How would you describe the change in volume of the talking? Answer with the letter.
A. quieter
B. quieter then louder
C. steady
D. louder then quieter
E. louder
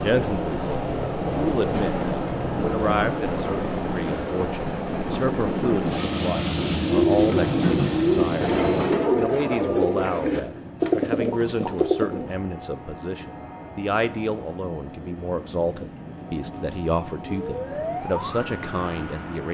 C.